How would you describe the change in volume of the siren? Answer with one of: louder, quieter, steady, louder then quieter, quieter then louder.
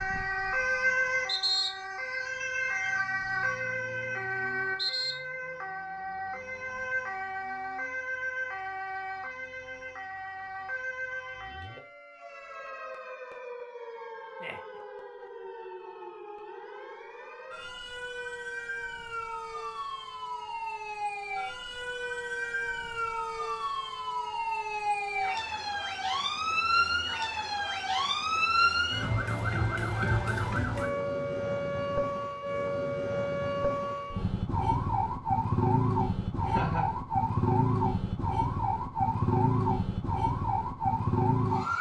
quieter then louder.